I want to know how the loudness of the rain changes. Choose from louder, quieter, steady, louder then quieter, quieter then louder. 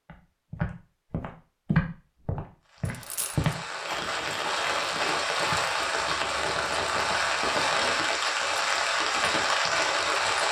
louder.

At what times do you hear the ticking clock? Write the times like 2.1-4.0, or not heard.
not heard.